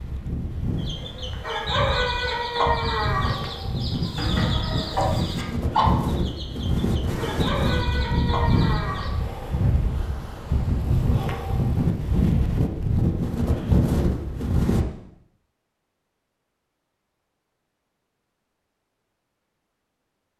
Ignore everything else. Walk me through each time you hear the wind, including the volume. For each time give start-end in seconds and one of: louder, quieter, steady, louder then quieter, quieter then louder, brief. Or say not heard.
0.0-14.8 louder.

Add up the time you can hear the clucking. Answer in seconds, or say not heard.
8 s.